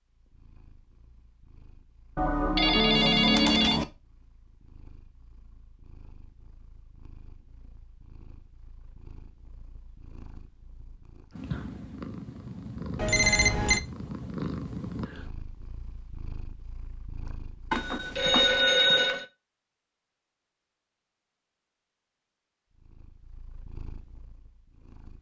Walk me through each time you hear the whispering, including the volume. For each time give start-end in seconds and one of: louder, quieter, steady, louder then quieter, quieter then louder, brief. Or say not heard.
not heard.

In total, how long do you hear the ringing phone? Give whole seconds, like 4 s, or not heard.
4 s.